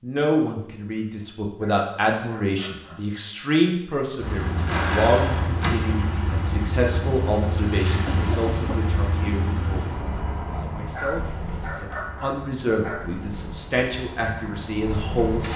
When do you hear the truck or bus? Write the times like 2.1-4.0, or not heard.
4.2-15.5.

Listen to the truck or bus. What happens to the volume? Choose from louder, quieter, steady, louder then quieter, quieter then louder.
quieter.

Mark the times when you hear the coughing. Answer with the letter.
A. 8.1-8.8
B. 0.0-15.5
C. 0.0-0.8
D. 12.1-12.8
A.